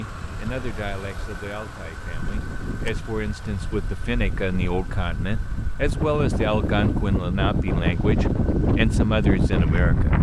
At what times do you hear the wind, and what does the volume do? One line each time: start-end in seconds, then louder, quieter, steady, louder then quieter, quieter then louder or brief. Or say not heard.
0.0-10.1 louder.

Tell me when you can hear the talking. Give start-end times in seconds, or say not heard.
0.0-10.1.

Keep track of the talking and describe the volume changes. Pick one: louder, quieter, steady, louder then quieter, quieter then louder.
louder.